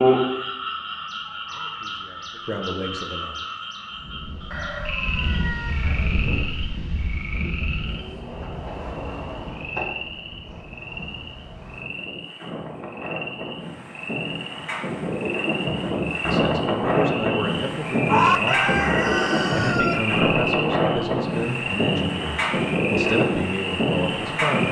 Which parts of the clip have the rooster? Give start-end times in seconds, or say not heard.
4.5-6.1, 18.1-20.1.